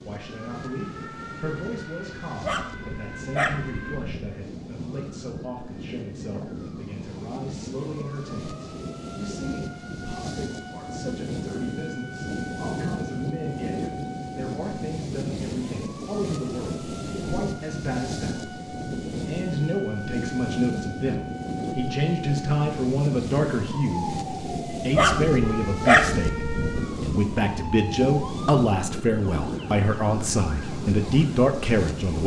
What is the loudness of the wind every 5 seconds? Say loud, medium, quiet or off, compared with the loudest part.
medium, medium, loud, loud, loud, loud, loud.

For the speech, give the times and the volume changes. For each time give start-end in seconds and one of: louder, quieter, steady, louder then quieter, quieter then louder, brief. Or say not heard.
0.0-32.2 louder.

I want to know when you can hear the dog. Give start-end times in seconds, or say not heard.
2.4-4.3, 24.9-26.9.